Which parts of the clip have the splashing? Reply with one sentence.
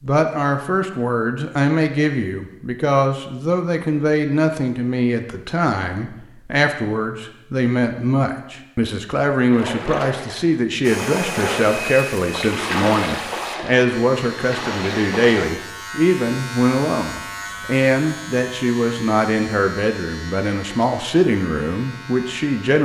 The splashing can be heard from 9.5 to 15.5 s.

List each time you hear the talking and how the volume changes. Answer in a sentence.
The talking can be heard from 0.0 to 22.7 s, at a steady volume.